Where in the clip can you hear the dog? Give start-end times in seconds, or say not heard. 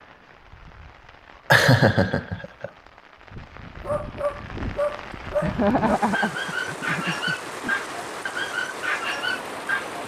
3.8-10.0.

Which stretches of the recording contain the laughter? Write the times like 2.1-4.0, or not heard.
1.5-2.7, 5.4-7.7.